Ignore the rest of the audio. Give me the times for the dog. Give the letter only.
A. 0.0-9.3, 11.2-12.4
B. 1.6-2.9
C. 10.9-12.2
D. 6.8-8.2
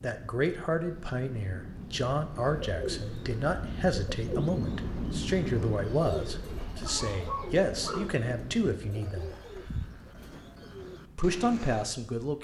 D.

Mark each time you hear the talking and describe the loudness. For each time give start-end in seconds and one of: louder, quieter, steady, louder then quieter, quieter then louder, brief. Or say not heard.
0.0-9.3 steady
11.2-12.4 brief.